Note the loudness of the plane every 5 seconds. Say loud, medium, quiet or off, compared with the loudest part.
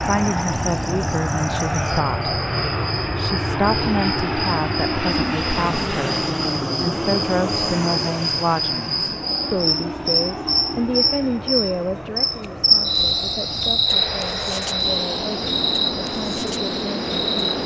loud, loud, medium, loud.